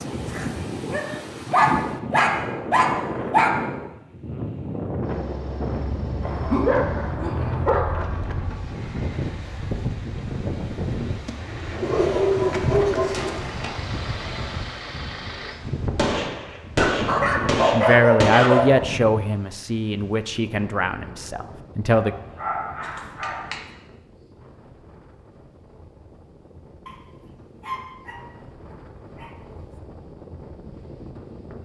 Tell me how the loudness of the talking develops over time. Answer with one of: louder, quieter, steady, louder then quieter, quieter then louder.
quieter.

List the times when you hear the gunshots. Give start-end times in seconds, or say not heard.
13.1-13.9, 15.9-18.7.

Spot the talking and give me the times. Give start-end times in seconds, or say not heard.
17.7-22.1.